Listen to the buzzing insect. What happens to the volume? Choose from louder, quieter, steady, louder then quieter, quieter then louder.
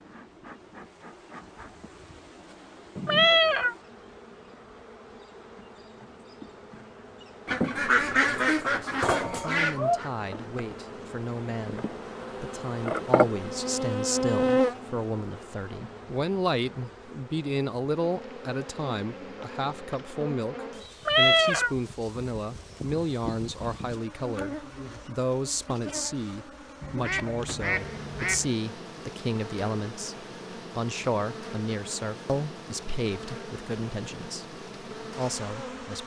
louder then quieter.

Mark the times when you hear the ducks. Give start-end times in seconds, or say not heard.
7.5-10.1, 26.8-28.5.